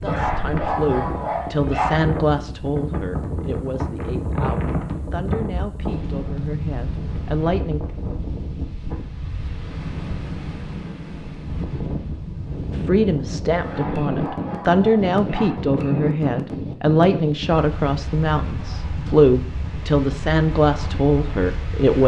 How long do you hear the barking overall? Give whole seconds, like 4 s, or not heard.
4 s.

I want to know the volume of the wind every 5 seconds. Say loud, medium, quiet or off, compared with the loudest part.
loud, loud, loud, loud, medium.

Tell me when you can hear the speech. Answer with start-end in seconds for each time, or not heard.
0.0-7.8, 12.8-22.0.